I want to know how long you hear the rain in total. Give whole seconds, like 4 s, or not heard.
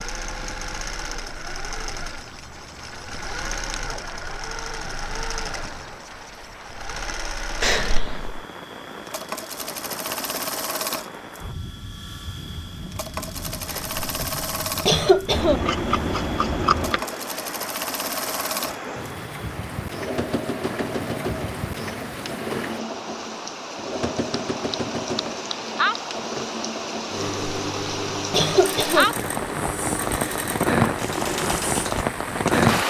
33 s.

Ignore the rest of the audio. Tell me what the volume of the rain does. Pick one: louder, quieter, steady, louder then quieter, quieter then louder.
louder.